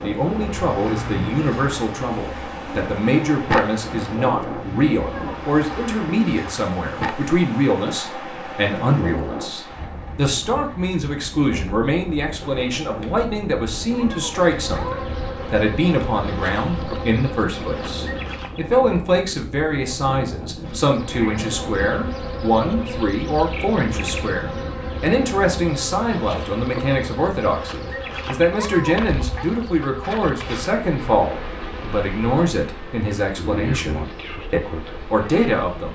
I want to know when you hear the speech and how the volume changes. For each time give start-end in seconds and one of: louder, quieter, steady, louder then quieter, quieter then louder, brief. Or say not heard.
0.0-35.9 steady.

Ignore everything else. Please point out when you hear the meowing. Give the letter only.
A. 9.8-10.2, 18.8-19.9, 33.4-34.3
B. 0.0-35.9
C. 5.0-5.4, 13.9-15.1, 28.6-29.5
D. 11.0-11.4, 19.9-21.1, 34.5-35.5
C.